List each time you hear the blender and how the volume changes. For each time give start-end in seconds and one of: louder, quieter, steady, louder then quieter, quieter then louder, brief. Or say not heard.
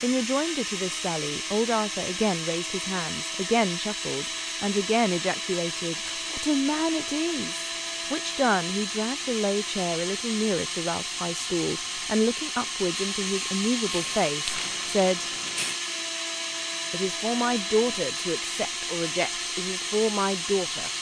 0.0-20.9 steady.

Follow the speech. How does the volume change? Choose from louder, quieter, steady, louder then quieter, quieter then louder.
steady.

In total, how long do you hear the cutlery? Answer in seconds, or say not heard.
not heard.